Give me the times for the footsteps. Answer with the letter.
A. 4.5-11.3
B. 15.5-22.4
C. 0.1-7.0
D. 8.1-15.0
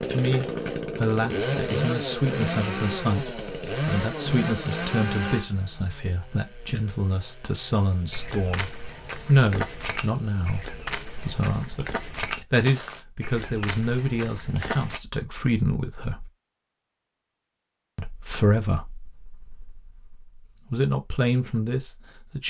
D.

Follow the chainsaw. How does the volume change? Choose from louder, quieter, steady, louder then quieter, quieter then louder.
quieter.